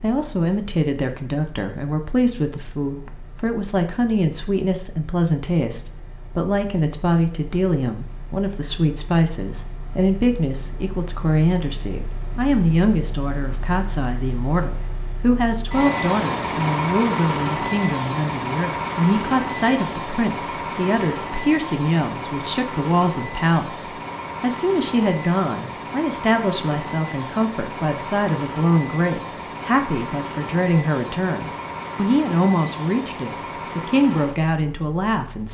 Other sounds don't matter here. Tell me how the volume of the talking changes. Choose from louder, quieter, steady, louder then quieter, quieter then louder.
steady.